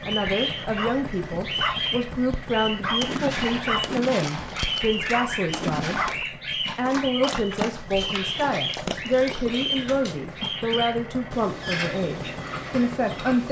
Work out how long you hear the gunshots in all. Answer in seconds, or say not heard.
3 s.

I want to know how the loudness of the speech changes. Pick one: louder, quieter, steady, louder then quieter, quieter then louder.
steady.